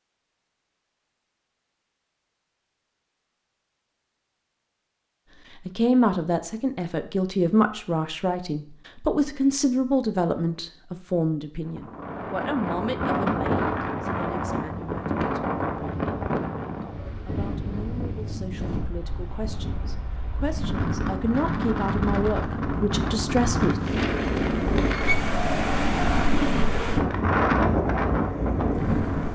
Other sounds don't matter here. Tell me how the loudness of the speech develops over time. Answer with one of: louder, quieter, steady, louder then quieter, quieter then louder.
quieter then louder.